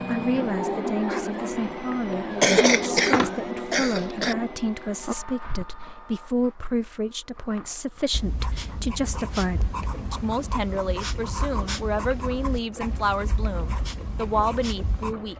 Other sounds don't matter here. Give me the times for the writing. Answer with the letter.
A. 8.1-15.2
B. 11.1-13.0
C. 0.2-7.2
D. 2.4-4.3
A.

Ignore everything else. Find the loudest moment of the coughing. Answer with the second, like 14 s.
3 s.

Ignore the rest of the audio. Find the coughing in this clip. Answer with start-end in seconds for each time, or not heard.
2.4-4.3.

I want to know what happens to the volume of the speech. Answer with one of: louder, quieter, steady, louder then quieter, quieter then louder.
steady.